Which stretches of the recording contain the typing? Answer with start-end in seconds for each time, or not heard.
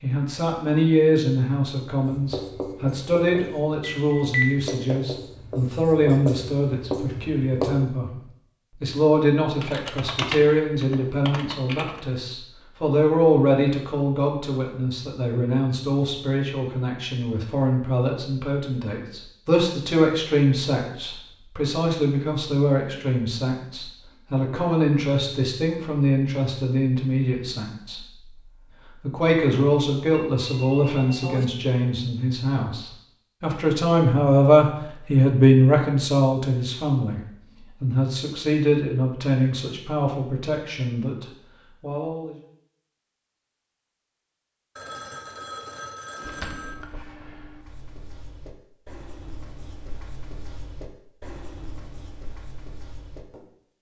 9.6-12.0, 46.2-47.6.